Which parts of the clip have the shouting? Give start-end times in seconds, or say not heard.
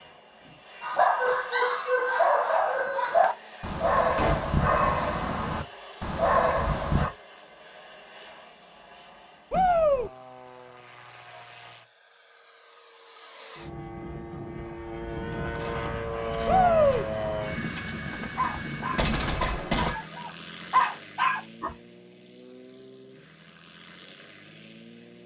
9.5-10.1, 16.4-17.1.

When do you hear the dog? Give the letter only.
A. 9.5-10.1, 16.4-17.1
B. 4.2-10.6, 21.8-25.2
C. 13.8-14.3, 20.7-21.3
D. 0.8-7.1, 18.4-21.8
D.